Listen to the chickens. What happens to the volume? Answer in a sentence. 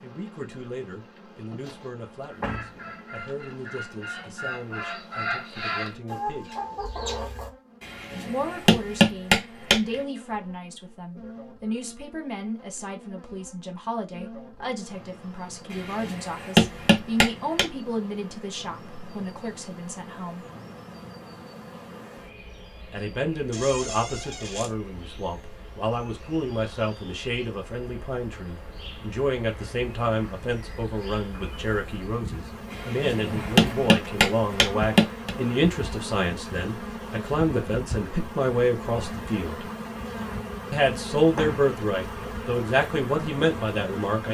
The volume of the chickens goes up.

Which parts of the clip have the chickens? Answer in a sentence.
The chickens can be heard from 2.2 to 7.5 s.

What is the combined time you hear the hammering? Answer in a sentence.
You can hear the hammering for 7 seconds altogether.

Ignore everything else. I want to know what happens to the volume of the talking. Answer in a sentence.
The loudness of the talking goes up.